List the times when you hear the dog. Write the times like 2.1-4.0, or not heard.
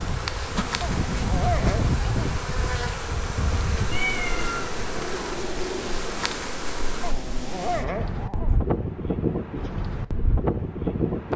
0.8-2.2, 7.0-8.6.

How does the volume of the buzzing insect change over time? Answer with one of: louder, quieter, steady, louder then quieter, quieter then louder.
steady.